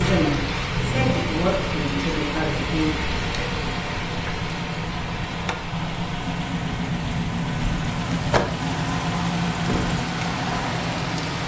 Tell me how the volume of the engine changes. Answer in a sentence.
The volume of the engine goes up.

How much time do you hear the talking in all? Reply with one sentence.
The talking can be heard for 3 seconds in total.